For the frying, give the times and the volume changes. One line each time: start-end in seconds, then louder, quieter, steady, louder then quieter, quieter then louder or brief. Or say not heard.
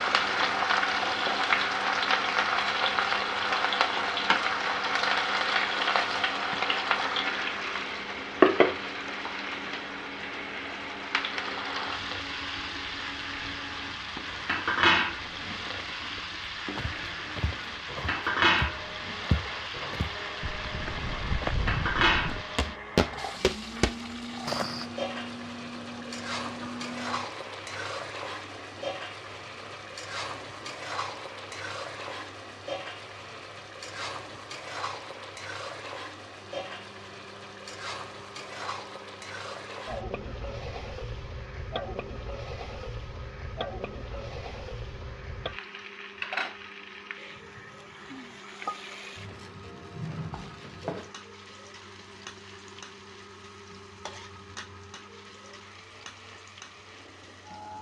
0.0-57.7 quieter.